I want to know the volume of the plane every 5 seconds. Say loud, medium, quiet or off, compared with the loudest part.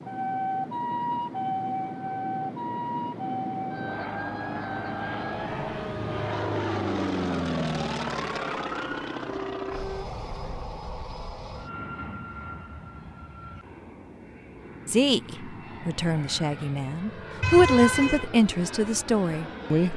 medium, loud, medium, medium.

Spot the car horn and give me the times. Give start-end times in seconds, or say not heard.
17.4-18.3.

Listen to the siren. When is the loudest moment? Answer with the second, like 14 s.
1 s.